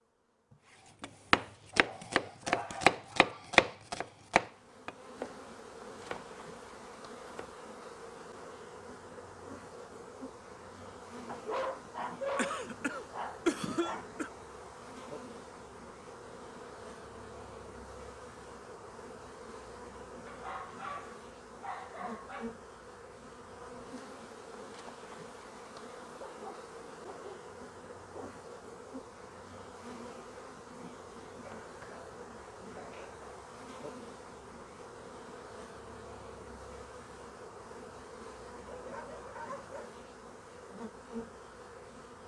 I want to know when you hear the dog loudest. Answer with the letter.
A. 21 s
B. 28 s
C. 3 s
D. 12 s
D.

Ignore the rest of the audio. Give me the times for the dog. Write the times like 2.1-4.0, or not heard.
1.7-3.5, 11.2-14.1, 20.2-22.5, 26.1-28.4, 38.7-40.0.